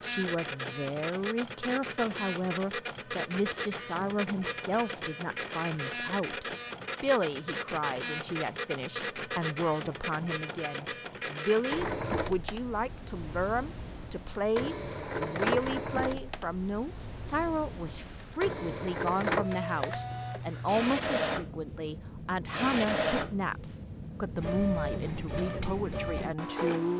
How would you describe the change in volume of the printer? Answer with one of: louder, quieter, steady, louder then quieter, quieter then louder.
steady.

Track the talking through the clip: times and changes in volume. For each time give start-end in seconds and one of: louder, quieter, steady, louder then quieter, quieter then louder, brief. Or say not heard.
0.0-26.9 steady.